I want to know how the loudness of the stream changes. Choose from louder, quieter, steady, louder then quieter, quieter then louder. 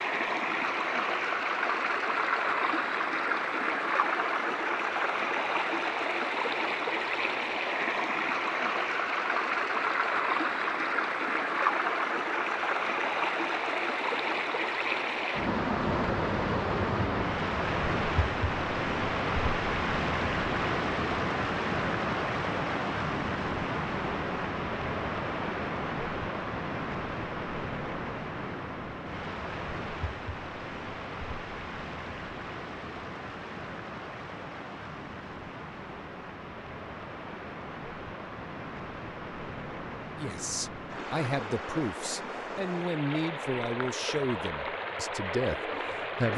quieter.